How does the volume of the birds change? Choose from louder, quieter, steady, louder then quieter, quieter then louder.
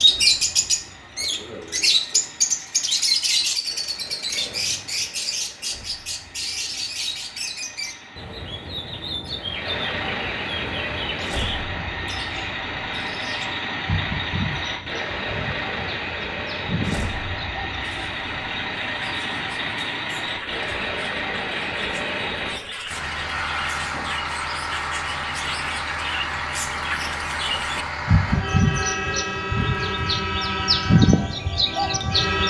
quieter then louder.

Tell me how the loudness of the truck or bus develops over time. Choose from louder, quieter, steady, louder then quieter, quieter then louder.
louder.